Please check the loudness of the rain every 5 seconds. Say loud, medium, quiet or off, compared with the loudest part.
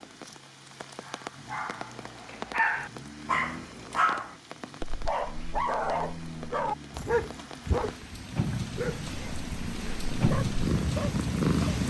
medium, medium, loud.